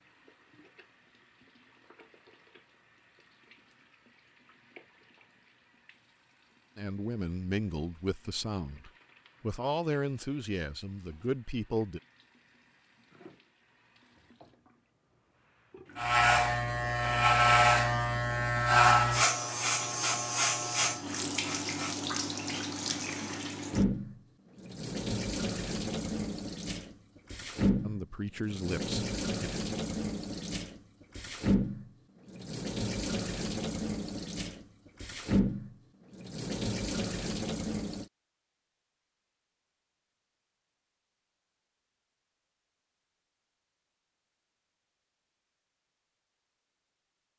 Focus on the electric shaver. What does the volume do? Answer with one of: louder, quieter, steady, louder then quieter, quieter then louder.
quieter.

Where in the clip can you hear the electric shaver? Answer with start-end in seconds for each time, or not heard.
15.9-23.4.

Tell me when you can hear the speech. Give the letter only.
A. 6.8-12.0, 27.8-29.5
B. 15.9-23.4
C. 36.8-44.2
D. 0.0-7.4
A.